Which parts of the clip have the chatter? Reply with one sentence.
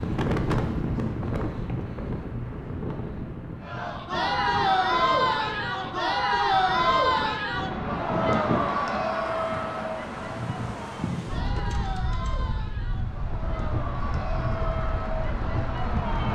The chatter can be heard from 3.6 to 16.3 s.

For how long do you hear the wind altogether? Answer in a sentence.
You can hear the wind for 16 seconds altogether.